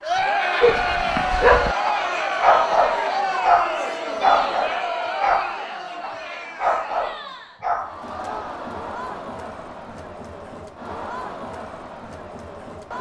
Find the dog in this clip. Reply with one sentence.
The dog can be heard from 0.6 to 8.0 s.